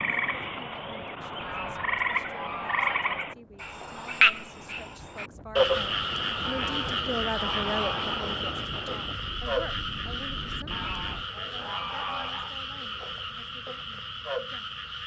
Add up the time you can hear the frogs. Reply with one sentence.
The frogs can be heard for 15 seconds in total.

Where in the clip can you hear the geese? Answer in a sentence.
The geese can be heard from 1.4 to 3.2 s, from 6.5 to 8.2 s and from 10.7 to 12.6 s.